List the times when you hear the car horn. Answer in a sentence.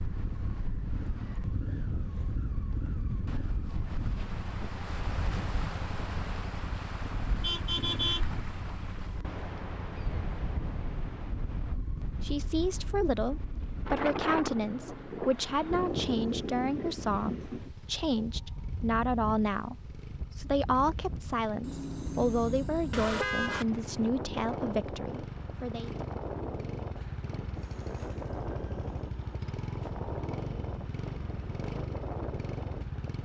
The car horn can be heard from 7.4 to 8.2 s and from 21.6 to 23.6 s.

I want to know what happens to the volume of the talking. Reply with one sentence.
The loudness of the talking stays about the same.